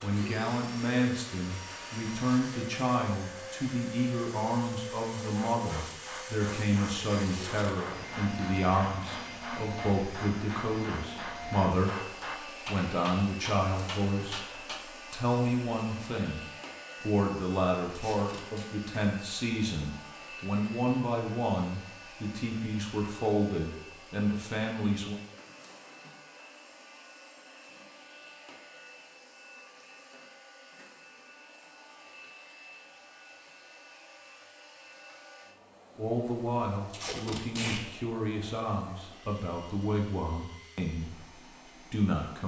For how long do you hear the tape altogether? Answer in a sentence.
The tape can be heard for 2 seconds in total.